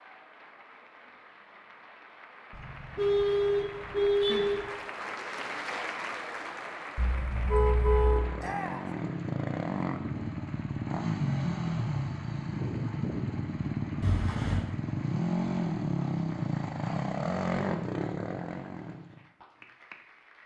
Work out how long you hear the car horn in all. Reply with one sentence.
The car horn can be heard for 4 seconds in total.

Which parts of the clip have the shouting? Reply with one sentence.
The shouting can be heard from 8.3 to 8.9 s.